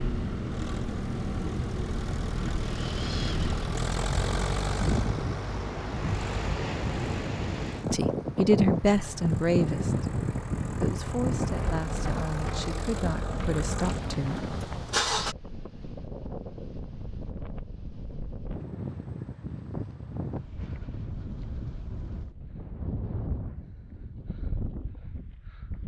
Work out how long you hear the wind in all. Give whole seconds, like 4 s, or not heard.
26 s.